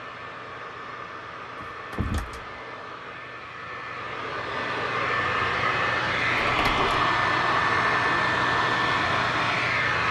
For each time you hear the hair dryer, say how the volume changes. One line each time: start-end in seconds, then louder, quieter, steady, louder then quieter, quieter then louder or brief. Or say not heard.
0.0-10.0 louder.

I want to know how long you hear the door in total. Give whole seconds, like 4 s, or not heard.
2 s.